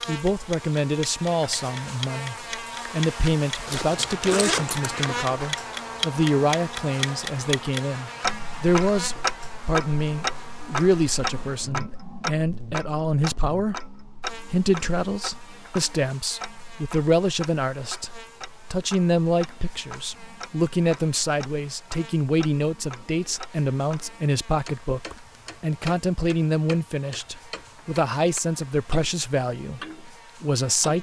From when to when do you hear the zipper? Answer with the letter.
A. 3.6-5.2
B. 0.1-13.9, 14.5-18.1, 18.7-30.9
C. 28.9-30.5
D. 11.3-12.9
A.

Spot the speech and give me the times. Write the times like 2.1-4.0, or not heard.
0.1-13.9, 14.5-18.1, 18.7-30.9.